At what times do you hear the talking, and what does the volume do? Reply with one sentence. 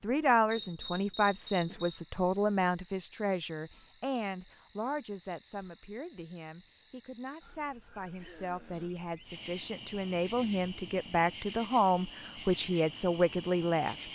You can hear the talking from 0.0 to 14.1 s, getting quieter then louder.